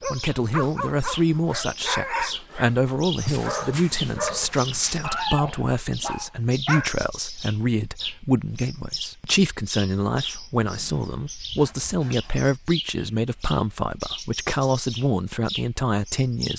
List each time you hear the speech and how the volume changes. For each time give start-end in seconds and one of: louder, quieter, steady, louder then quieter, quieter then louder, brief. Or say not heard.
0.1-16.5 steady.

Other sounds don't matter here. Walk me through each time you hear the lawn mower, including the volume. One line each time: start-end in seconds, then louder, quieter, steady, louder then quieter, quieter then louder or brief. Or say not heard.
not heard.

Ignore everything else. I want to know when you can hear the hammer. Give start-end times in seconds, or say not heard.
not heard.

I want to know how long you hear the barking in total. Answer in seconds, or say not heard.
7 s.